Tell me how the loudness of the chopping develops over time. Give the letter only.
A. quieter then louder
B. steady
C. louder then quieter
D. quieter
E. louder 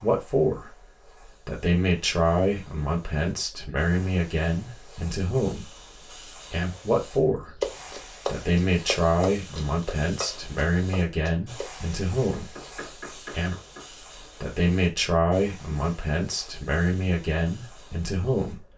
D.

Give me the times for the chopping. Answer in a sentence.
You can hear the chopping from 7.5 to 13.8 s.